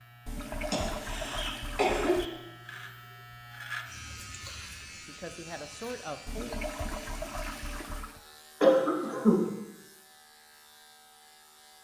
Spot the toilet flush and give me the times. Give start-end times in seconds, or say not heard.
0.2-2.3, 6.2-8.2.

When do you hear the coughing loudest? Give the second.
9 s.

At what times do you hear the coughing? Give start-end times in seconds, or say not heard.
0.7-2.2, 8.6-9.4.